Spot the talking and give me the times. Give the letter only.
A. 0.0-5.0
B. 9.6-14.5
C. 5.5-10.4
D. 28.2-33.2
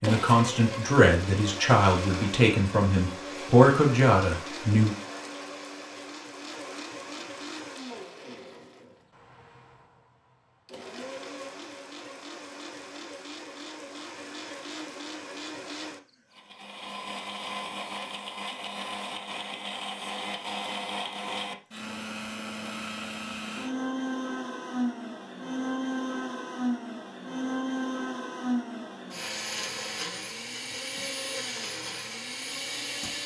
A.